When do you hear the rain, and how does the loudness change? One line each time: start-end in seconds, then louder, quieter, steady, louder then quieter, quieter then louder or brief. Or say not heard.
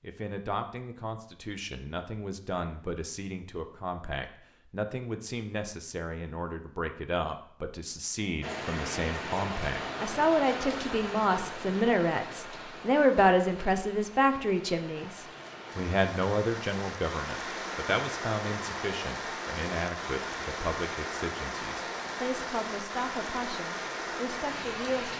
8.4-25.1 quieter then louder.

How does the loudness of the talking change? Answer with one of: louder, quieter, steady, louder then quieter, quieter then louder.
louder then quieter.